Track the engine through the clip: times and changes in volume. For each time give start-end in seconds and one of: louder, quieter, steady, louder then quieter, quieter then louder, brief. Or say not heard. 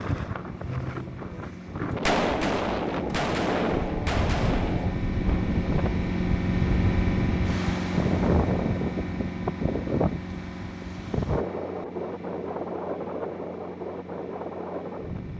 0.2-15.3 louder then quieter.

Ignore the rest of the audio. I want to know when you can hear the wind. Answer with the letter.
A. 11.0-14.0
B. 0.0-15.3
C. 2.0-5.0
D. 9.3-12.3
B.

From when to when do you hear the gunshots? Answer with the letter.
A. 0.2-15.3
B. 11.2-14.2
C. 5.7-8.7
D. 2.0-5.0
D.